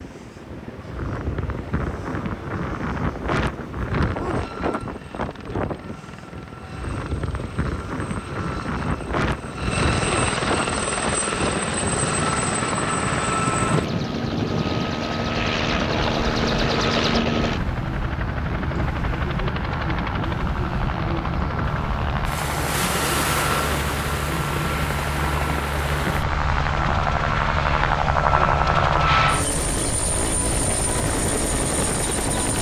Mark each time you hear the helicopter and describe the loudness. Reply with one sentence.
The helicopter can be heard from 0.0 to 32.5 s, getting louder.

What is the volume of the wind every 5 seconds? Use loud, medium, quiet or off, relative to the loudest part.
loud, loud, loud, loud, loud, medium, medium.